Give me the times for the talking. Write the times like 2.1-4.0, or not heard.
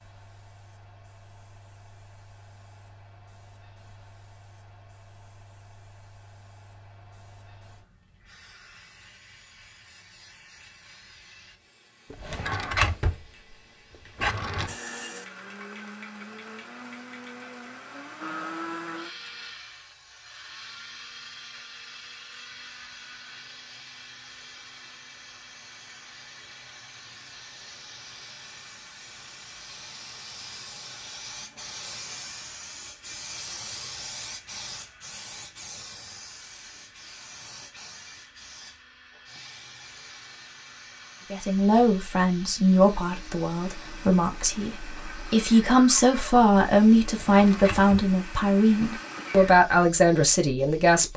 41.3-51.1.